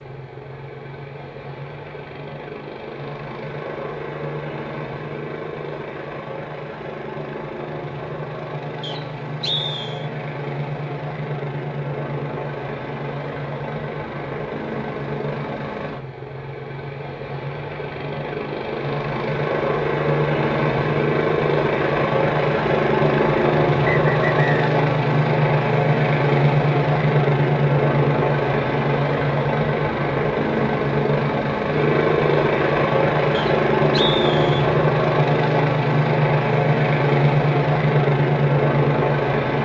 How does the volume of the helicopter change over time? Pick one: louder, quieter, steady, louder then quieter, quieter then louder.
louder.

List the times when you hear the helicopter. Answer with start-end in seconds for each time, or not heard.
0.0-39.6.